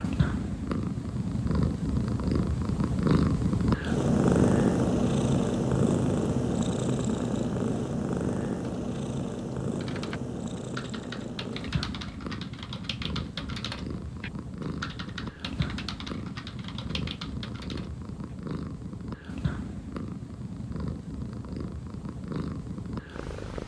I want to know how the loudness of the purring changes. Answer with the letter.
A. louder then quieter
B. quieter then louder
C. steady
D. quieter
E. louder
D.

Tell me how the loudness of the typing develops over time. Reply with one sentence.
The loudness of the typing stays about the same.